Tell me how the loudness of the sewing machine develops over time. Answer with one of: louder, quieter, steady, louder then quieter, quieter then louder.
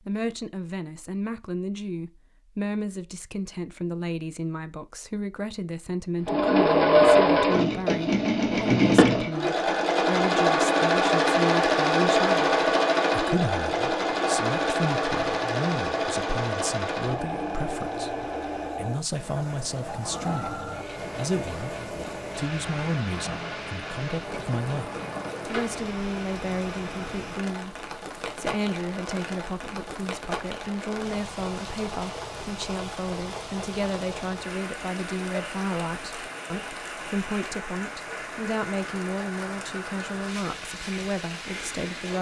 quieter.